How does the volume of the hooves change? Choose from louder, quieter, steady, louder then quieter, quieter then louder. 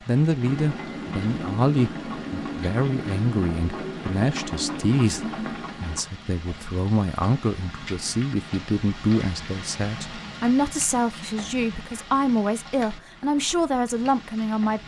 steady.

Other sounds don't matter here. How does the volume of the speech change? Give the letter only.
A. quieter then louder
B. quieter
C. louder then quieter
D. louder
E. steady
E.